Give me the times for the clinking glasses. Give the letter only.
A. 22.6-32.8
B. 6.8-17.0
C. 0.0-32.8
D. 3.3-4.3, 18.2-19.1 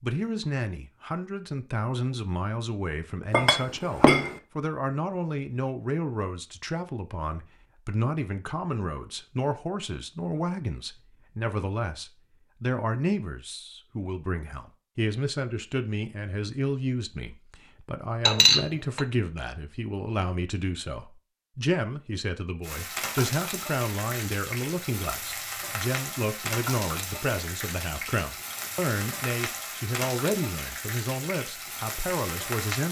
D.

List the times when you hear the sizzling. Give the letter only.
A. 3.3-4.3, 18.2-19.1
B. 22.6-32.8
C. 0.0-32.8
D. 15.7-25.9
B.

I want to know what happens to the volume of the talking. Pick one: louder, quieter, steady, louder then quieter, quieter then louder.
steady.